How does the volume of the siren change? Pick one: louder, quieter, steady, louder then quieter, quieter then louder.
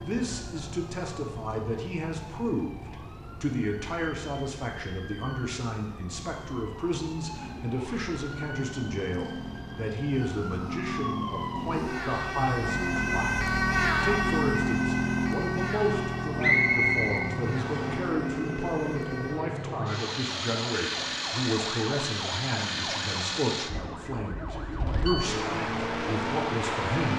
louder then quieter.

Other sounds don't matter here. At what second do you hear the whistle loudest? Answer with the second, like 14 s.
17 s.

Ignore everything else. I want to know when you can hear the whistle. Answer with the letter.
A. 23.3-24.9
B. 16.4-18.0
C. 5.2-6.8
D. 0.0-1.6
B.